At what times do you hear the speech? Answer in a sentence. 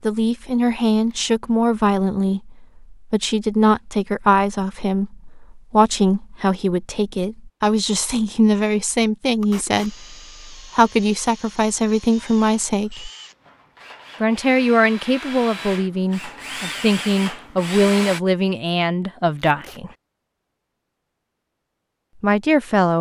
You can hear the speech from 0.0 to 13.1 s, from 14.2 to 19.9 s and from 22.2 to 22.9 s.